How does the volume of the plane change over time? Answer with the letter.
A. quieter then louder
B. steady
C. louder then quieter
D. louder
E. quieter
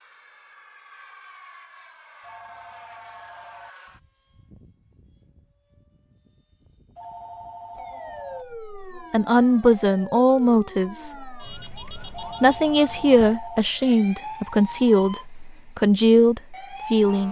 E.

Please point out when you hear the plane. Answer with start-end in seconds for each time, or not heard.
0.0-8.6.